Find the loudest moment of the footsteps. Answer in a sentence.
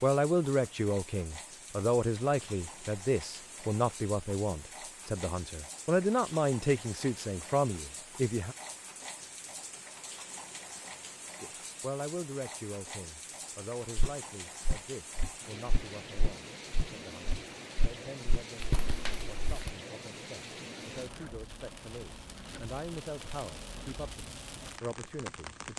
The loudest moment of the footsteps is at 19 seconds.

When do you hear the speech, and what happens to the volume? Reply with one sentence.
You can hear the speech from 0.0 to 8.6 s, at a steady volume; and from 11.4 to 25.7 s, getting quieter then louder.